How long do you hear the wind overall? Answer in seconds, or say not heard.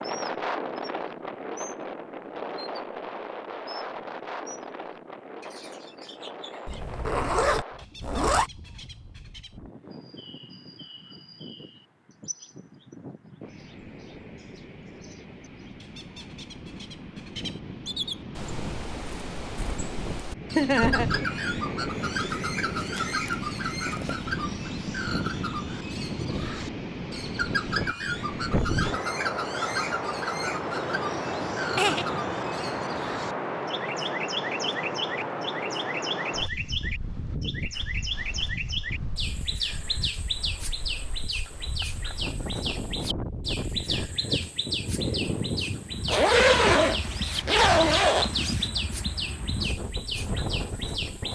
51 s.